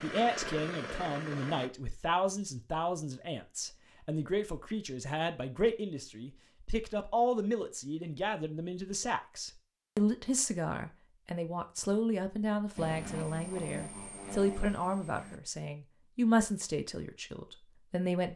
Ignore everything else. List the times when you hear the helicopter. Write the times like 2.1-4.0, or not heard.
0.0-1.7, 12.8-15.4.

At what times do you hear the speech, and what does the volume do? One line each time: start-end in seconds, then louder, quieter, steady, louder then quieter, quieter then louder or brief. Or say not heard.
0.0-18.3 steady.